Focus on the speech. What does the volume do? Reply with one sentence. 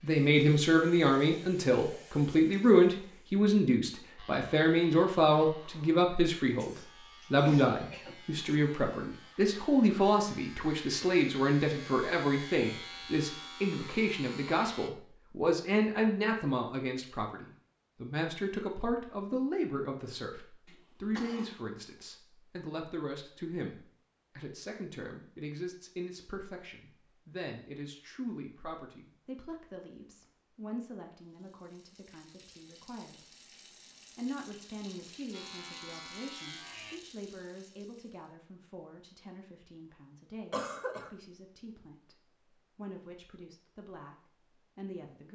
The volume of the speech goes down.